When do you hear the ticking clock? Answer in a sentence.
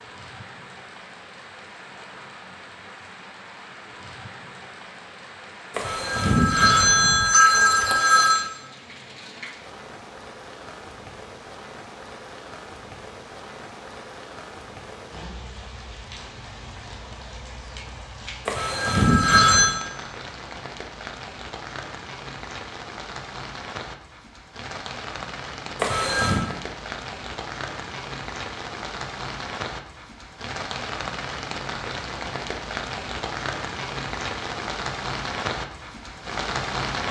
You can't hear the ticking clock here.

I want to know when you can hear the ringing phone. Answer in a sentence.
The ringing phone can be heard from 5.8 to 8.4 s, from 18.4 to 19.8 s and from 25.8 to 26.4 s.